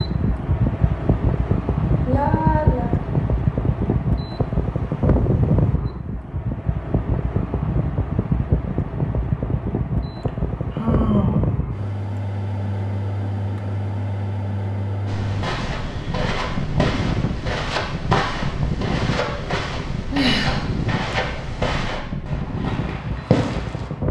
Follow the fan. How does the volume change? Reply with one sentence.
The volume of the fan goes down.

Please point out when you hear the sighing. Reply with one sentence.
The sighing can be heard from 2.0 to 2.9 s, from 10.2 to 11.8 s and from 20.1 to 20.6 s.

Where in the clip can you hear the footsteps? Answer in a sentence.
The footsteps can be heard from 15.1 to 23.9 s.